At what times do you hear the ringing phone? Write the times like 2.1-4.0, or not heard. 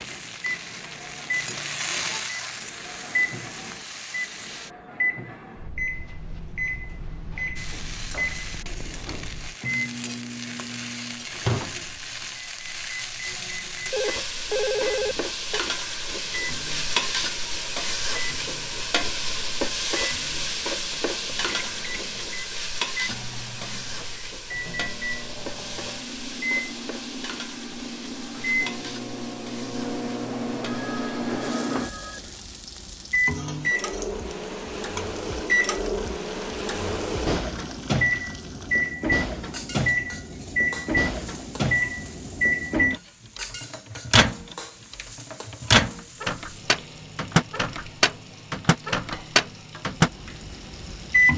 13.9-15.6, 30.6-32.4.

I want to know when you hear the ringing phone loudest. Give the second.
15 s.